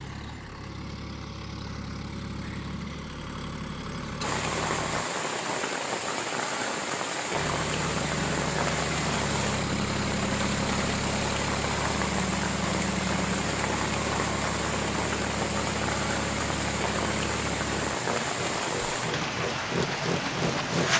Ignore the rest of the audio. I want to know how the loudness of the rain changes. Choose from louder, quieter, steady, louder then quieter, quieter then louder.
steady.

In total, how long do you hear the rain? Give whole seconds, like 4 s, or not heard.
17 s.